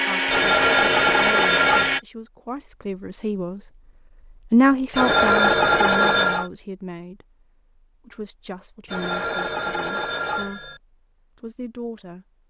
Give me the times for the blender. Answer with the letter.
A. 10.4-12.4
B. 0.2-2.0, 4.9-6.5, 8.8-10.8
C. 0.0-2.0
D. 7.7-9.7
C.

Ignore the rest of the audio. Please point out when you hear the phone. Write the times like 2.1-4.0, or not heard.
0.2-2.0, 4.9-6.5, 8.8-10.8.